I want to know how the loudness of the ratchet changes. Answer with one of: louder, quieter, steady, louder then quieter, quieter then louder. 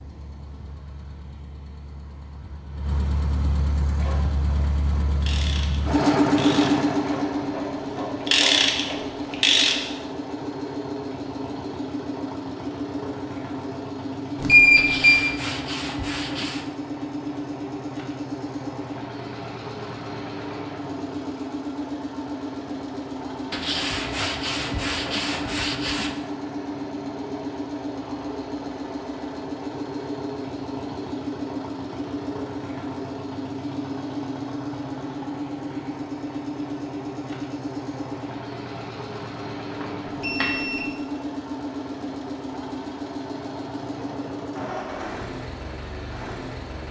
louder.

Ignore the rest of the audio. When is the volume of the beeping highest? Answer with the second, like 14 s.
15 s.